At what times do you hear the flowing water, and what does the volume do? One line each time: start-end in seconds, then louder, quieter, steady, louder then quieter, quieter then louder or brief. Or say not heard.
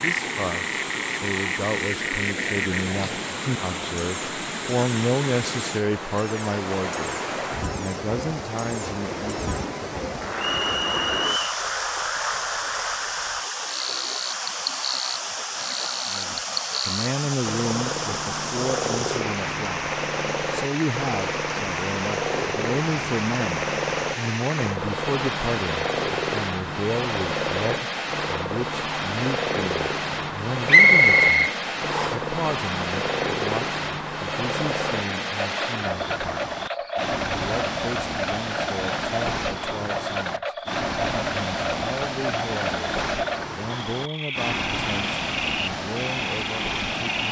0.0-47.2 steady.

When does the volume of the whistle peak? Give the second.
31 s.